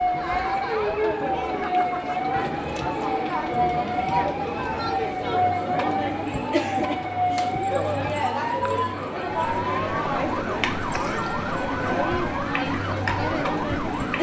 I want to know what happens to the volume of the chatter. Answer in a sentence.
The loudness of the chatter stays about the same.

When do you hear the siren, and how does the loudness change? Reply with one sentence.
You can hear the siren from 0.0 to 14.1 s, at a steady volume.